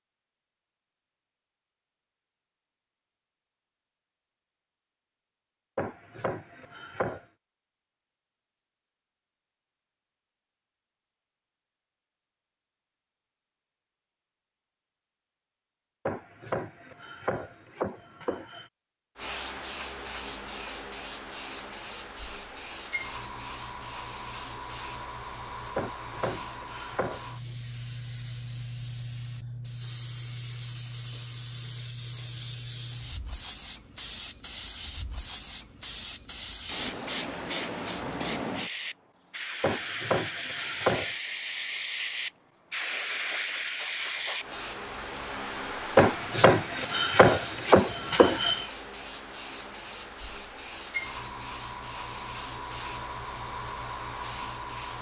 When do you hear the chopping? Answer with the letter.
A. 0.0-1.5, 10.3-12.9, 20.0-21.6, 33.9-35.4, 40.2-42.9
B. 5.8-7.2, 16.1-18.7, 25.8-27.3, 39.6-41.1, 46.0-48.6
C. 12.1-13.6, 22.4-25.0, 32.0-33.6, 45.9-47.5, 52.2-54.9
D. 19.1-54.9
B.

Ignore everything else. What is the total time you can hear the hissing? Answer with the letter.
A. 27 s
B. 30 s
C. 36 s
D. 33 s
C.